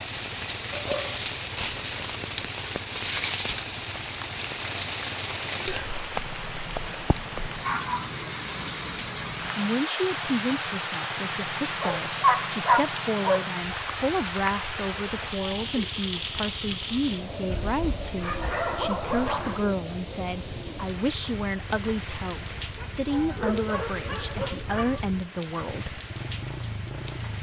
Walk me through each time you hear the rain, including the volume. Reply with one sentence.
You can hear the rain from 0.0 to 27.3 s, getting quieter.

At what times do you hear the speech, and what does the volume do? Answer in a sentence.
The speech can be heard from 9.6 to 26.0 s, at a steady volume.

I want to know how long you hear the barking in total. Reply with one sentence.
You can hear the barking for 8 seconds altogether.